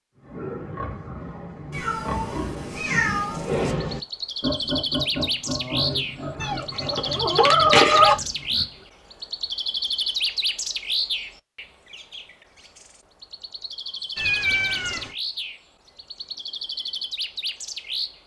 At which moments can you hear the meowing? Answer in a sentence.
The meowing can be heard from 1.7 to 3.8 s, from 6.4 to 8.2 s and from 14.2 to 15.2 s.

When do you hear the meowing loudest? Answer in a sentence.
The volume of the meowing peaks at 8 seconds.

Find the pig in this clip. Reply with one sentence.
The pig can be heard from 0.1 to 8.8 s.